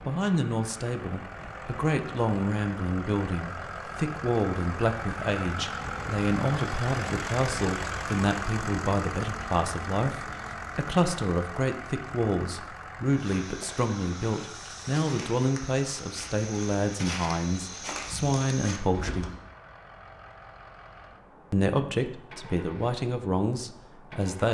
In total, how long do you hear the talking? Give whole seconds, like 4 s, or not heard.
22 s.